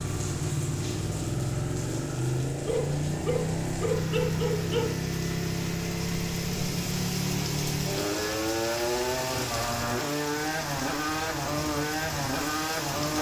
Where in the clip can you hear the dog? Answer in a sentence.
You can hear the dog from 2.6 to 5.0 s.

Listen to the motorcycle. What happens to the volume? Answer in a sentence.
The volume of the motorcycle stays about the same.